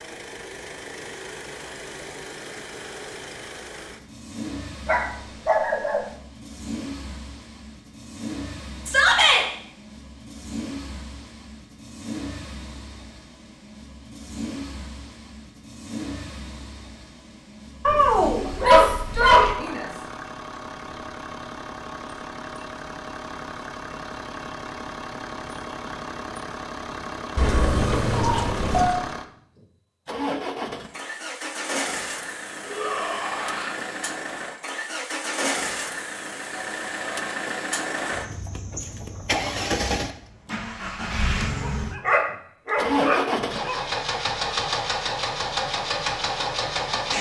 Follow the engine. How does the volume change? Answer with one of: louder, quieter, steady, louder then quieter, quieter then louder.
louder.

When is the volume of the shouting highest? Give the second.
9 s.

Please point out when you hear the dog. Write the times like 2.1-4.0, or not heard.
4.8-6.0, 17.9-19.6, 27.4-29.0, 41.6-43.8.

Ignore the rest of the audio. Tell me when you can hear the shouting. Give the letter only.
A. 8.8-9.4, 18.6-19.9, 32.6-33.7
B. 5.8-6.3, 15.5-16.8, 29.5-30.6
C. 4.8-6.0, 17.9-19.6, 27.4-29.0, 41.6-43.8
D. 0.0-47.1
A.